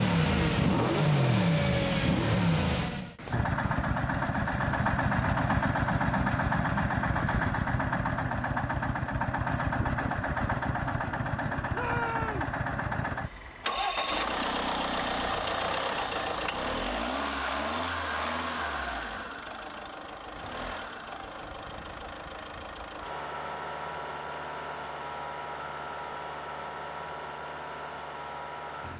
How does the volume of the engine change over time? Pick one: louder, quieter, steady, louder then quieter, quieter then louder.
quieter.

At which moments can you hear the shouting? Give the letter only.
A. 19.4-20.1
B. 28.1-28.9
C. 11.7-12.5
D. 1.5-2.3
C.